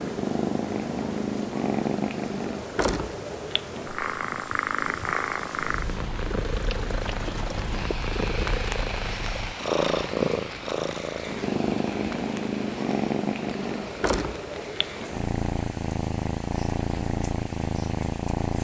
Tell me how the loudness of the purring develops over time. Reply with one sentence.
The loudness of the purring stays about the same.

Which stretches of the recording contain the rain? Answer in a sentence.
You can hear the rain from 0.0 to 18.5 s.